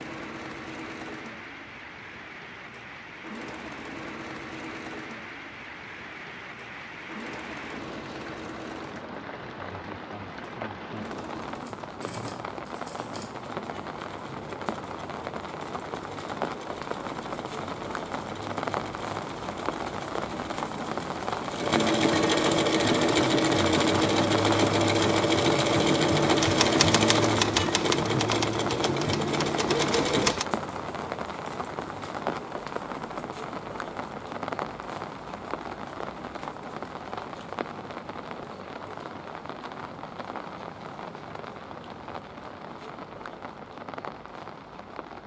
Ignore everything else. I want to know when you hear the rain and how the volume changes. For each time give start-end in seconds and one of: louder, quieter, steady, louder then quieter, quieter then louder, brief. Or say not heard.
0.0-45.2 louder then quieter.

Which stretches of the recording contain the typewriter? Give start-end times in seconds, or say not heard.
26.4-30.4.